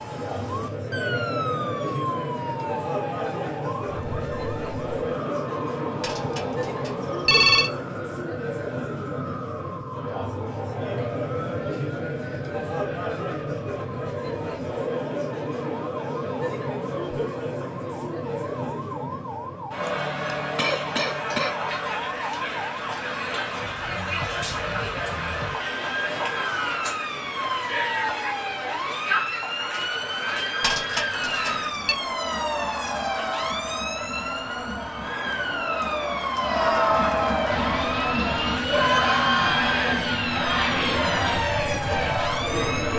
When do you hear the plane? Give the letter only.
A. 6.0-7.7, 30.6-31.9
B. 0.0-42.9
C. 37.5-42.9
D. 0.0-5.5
C.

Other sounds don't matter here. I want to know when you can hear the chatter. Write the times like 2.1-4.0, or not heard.
0.0-42.9.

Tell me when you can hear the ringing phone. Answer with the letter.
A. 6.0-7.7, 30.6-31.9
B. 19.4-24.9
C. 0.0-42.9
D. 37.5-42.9
A.